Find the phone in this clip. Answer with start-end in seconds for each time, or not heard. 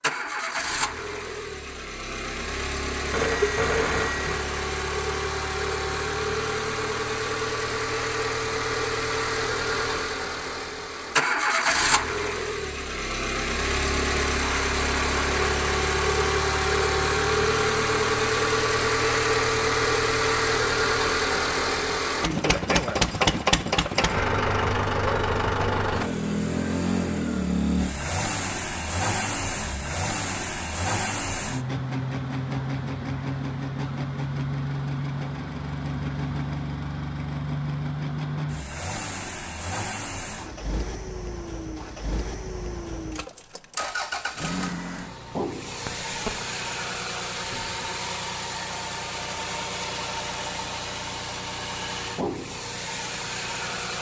3.1-4.3, 23.9-24.8, 45.9-46.5.